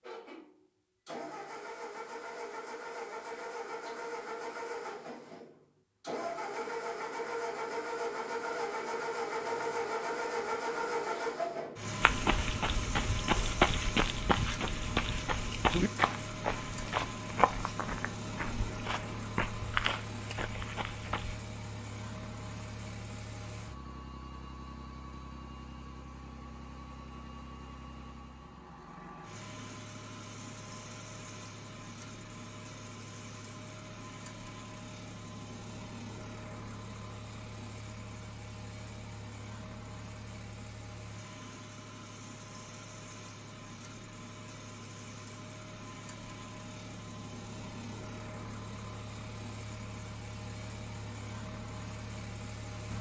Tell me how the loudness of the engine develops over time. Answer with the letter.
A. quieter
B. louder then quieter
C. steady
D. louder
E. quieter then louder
A.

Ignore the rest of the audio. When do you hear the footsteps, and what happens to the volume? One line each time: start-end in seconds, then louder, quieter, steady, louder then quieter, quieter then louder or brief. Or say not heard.
12.0-21.4 quieter then louder.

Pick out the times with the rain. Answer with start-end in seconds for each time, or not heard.
not heard.